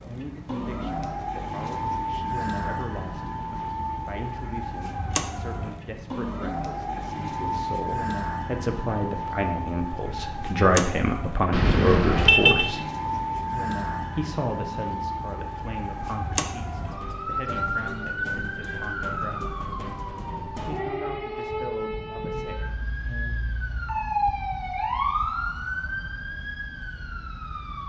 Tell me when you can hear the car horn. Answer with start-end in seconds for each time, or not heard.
11.5-12.7.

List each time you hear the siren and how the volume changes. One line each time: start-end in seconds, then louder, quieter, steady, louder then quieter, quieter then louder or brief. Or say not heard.
0.0-27.8 steady.